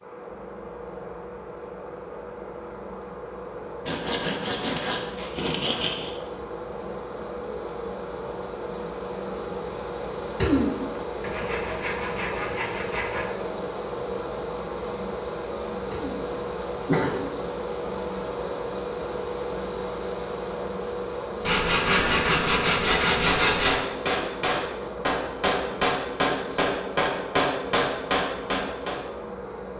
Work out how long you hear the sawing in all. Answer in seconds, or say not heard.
7 s.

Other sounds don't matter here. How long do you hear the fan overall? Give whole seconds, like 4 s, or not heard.
30 s.